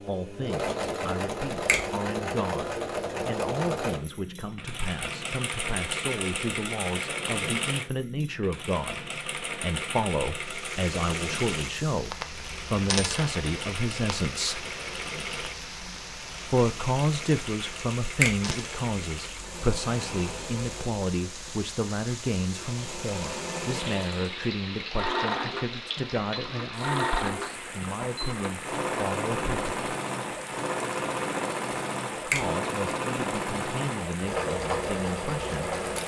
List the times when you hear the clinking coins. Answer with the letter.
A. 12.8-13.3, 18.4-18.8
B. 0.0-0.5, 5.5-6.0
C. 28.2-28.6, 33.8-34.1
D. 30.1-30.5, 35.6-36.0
A.